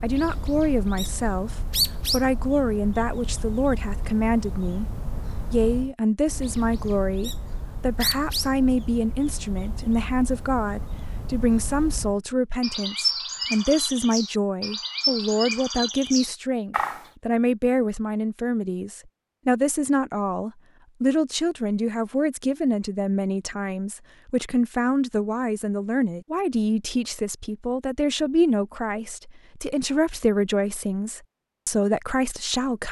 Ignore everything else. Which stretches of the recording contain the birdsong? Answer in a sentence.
You can hear the birdsong from 0.0 to 17.1 s.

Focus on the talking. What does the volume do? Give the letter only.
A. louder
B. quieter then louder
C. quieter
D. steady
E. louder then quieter
D.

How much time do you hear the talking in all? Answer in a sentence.
You can hear the talking for 32 seconds altogether.